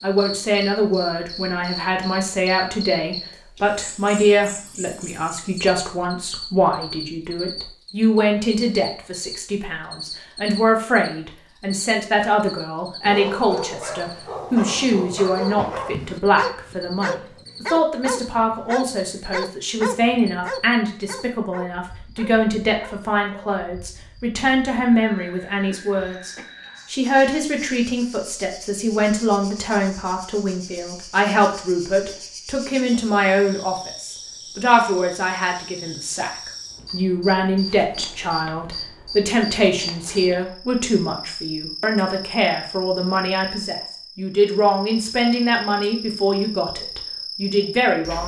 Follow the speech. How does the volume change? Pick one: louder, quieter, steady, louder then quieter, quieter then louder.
steady.